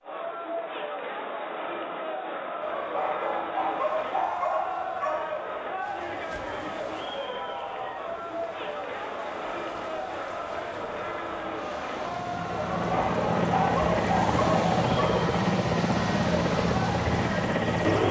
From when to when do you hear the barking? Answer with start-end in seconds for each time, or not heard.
2.6-5.4, 12.7-15.3.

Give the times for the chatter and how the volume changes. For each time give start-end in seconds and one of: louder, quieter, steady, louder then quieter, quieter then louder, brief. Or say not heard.
0.0-18.0 steady.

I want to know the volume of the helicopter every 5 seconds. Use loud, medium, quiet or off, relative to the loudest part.
off, off, loud, loud.